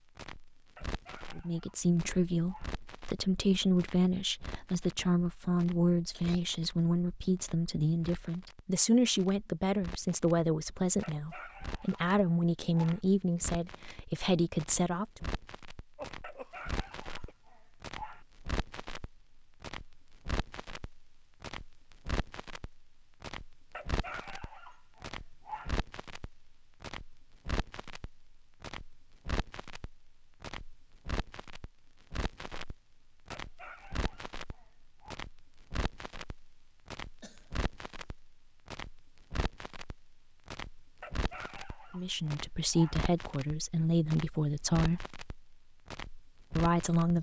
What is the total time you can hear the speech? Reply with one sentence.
The speech can be heard for 18 seconds in total.